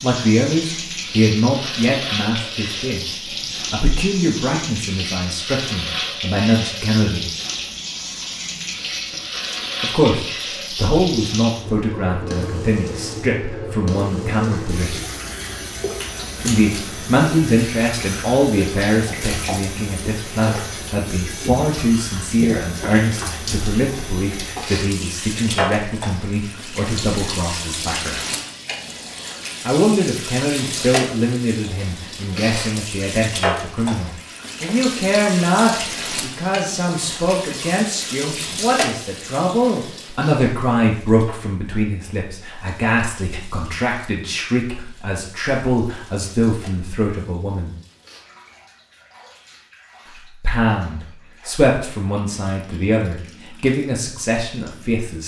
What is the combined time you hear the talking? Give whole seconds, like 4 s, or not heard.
47 s.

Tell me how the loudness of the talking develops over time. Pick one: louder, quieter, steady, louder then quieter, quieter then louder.
steady.